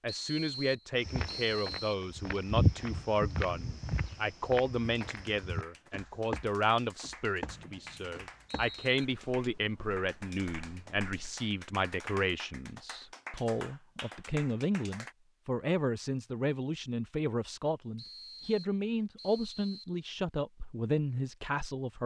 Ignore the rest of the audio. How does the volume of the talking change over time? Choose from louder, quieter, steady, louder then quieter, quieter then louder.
steady.